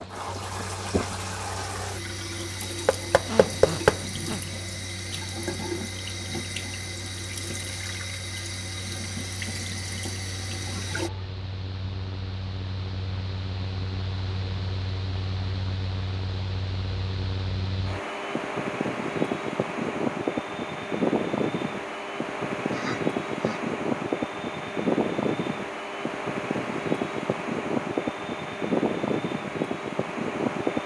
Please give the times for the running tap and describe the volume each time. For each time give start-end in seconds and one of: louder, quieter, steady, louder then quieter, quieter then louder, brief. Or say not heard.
0.0-11.1 steady.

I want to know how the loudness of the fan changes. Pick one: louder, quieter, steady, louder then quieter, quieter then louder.
louder.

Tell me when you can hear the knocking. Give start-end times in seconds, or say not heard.
2.9-4.0.